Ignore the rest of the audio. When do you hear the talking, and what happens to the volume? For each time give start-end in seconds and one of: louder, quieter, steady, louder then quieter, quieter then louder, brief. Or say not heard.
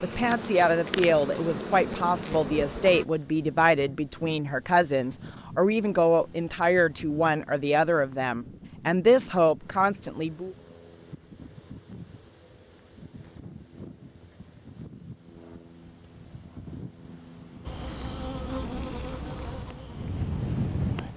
0.0-10.6 steady.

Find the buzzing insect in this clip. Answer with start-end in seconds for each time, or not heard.
0.0-3.0, 17.6-21.1.